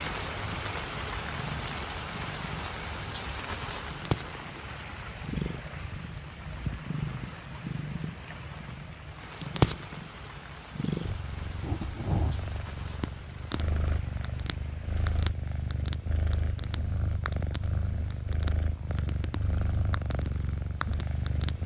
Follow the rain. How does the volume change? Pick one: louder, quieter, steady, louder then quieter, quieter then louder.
quieter.